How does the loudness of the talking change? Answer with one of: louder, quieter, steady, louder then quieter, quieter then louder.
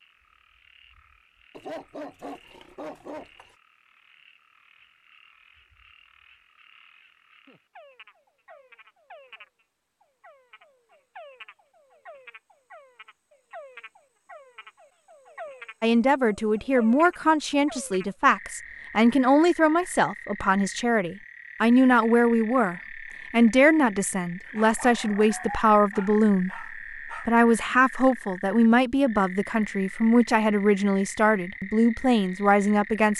steady.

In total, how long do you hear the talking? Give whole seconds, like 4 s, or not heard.
17 s.